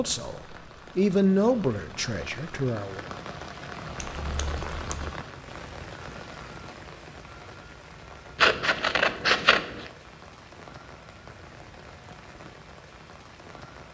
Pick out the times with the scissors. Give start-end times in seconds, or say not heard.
4.0-5.1, 8.3-9.9.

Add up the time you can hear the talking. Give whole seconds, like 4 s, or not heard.
3 s.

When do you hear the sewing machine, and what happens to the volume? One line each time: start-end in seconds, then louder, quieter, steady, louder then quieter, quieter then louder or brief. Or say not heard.
not heard.